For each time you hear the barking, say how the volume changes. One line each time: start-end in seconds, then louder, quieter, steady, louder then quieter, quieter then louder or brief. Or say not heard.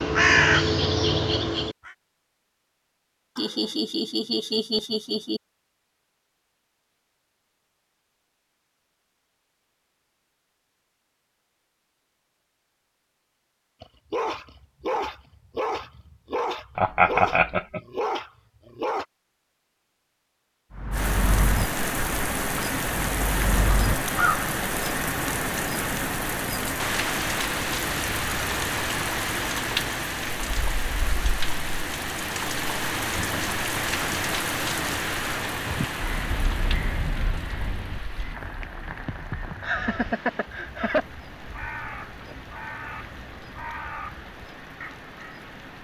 13.8-19.1 steady.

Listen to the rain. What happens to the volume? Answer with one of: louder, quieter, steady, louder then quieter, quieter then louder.
quieter.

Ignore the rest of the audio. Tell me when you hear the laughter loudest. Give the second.
17 s.